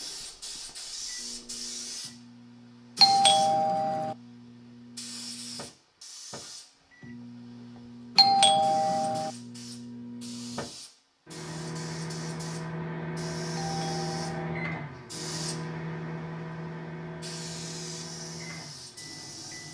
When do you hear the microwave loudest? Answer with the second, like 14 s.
14 s.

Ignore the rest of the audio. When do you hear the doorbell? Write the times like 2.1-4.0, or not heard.
3.0-4.2, 8.2-9.3, 13.6-14.4.